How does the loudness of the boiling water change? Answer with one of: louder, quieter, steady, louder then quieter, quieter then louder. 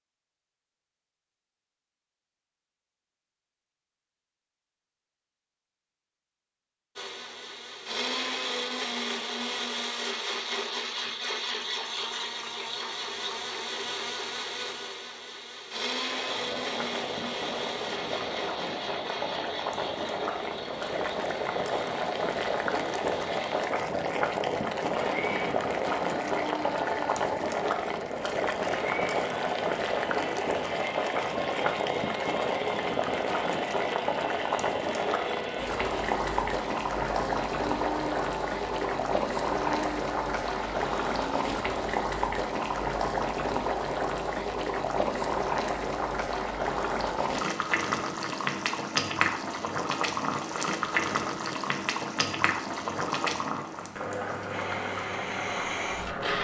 steady.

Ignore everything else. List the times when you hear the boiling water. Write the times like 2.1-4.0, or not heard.
16.0-56.3.